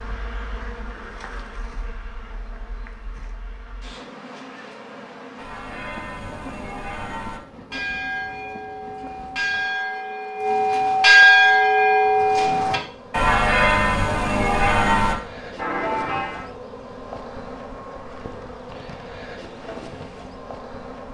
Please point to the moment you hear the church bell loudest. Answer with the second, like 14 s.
11 s.